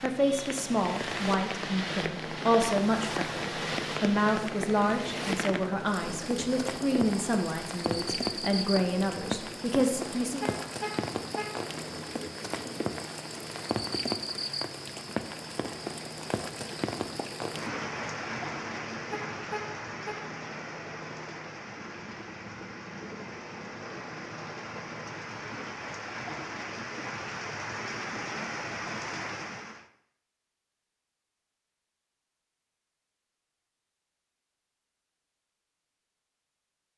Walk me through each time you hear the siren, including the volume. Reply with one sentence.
The siren can't be heard in this clip.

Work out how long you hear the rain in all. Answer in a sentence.
You can hear the rain for 30 seconds altogether.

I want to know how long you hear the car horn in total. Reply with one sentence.
You can hear the car horn for 2 seconds altogether.